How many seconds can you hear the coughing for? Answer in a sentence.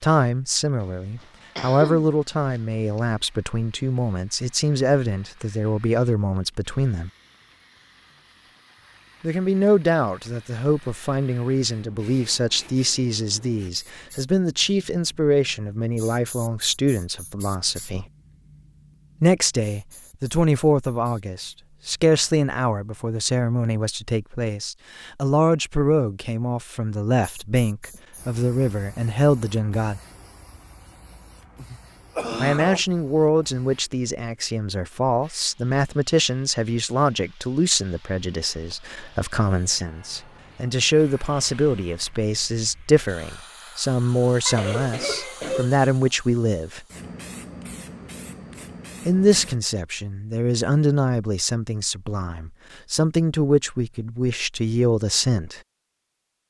You can hear the coughing for 4 seconds altogether.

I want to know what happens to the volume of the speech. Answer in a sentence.
The volume of the speech stays about the same.